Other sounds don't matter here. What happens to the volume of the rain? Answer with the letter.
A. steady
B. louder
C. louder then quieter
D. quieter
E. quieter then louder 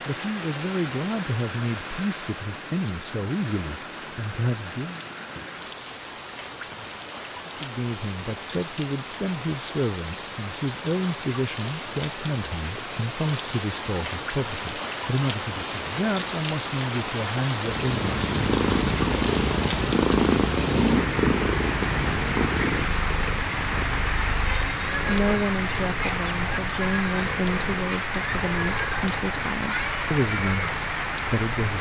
B.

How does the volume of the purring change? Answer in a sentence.
The loudness of the purring goes down.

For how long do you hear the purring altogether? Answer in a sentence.
The purring can be heard for 14 seconds in total.